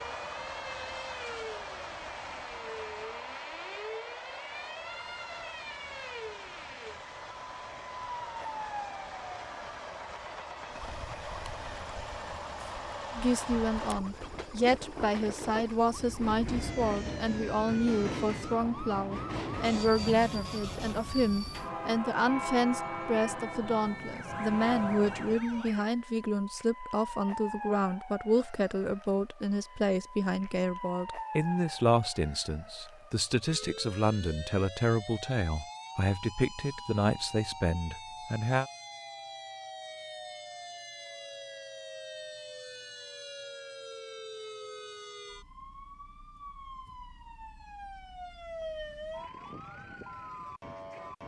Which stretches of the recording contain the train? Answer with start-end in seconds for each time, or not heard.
0.0-25.4.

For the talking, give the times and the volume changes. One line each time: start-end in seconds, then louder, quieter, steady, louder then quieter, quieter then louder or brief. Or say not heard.
13.2-38.7 steady.